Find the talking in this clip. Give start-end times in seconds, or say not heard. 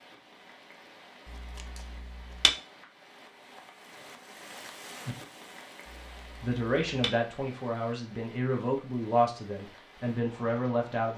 6.4-11.1.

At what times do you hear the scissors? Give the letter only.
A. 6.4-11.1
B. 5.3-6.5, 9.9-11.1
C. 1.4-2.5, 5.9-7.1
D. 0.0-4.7
C.